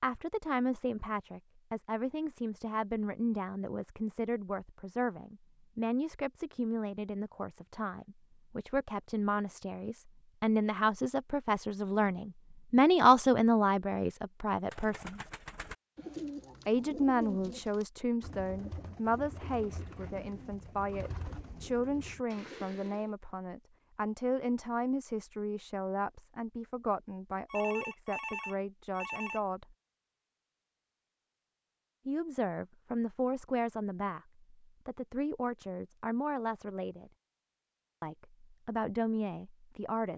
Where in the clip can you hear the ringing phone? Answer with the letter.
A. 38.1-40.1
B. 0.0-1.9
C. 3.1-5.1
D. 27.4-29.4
D.